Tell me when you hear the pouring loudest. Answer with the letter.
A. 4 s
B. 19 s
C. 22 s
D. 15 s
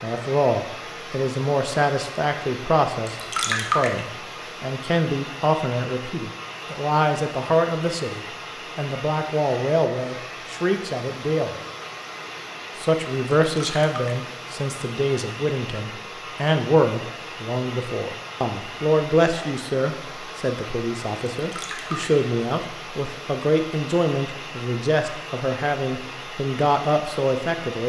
A.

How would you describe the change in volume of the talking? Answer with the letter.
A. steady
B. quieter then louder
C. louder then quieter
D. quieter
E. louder
A.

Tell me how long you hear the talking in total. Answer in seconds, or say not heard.
27 s.